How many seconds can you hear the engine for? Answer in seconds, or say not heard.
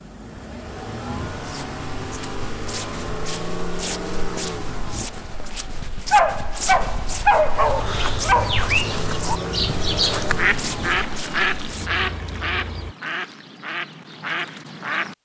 13 s.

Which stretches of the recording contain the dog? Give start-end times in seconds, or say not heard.
6.1-8.7.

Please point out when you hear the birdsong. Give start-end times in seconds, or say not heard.
7.5-15.2.